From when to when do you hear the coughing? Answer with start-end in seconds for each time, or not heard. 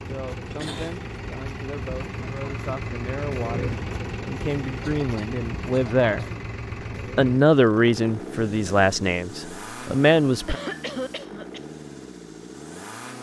0.3-1.1, 4.8-6.3, 10.4-11.6.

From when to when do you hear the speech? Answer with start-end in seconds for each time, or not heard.
0.0-6.2, 7.2-10.6.